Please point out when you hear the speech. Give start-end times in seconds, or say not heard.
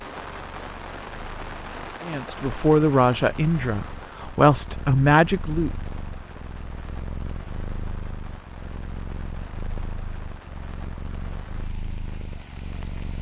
2.0-5.9.